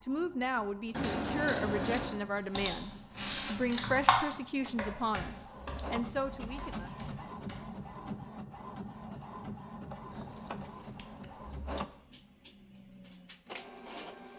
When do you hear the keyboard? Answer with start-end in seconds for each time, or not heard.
2.5-4.2, 4.8-7.7.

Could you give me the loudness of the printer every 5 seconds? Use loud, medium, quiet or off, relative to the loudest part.
medium, loud, loud.